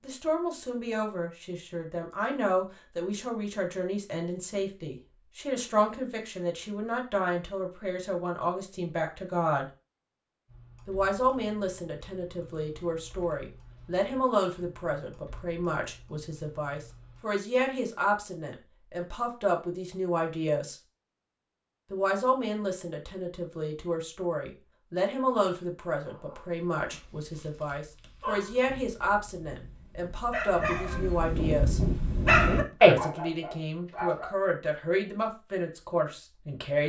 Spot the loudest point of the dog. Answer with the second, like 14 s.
33 s.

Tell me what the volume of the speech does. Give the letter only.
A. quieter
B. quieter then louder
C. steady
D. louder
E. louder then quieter
C.